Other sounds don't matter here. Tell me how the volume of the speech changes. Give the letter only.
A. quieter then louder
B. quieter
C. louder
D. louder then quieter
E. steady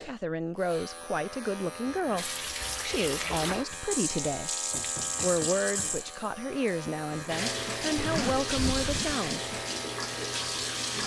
E.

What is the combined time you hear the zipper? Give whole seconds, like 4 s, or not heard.
3 s.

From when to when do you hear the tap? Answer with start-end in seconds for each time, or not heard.
2.1-11.0.